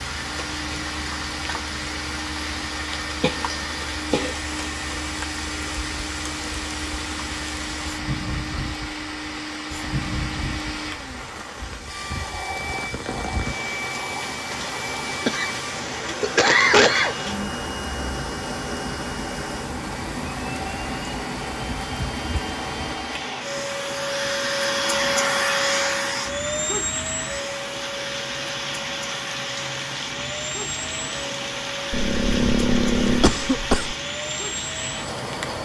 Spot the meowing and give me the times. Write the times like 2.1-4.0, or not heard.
not heard.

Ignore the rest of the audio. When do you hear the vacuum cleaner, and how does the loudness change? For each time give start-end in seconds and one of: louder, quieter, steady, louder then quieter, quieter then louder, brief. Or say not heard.
0.0-35.6 louder then quieter.